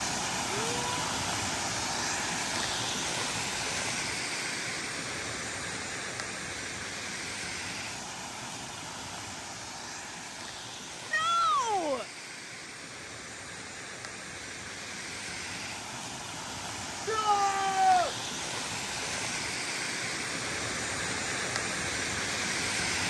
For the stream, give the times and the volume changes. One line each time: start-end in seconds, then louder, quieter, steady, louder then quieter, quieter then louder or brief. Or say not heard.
0.0-23.0 quieter then louder.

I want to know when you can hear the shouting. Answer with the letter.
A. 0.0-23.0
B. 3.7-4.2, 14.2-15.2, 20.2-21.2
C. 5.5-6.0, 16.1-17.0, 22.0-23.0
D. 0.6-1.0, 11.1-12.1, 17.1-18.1
D.